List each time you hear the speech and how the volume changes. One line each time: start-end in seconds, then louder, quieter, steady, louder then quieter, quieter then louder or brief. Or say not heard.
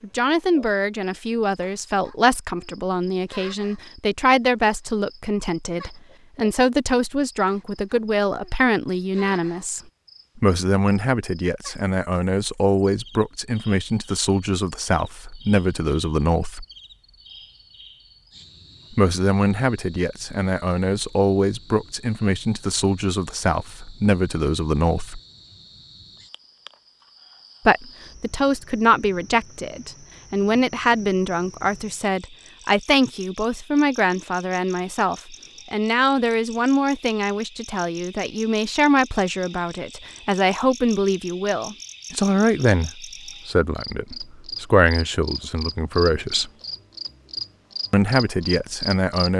0.0-16.6 steady
18.9-25.2 steady
27.6-46.5 steady
47.9-49.3 brief.